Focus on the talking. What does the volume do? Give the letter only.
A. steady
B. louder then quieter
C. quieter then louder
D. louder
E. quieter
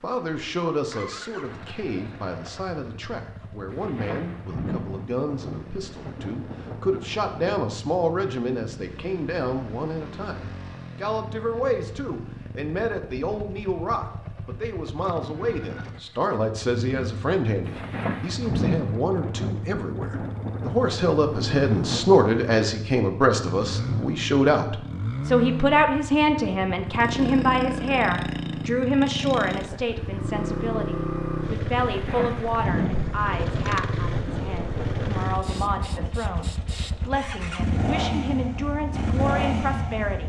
B.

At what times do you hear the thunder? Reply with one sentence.
The thunder can be heard from 3.7 to 7.6 s, from 17.6 to 22.2 s and from 31.8 to 36.1 s.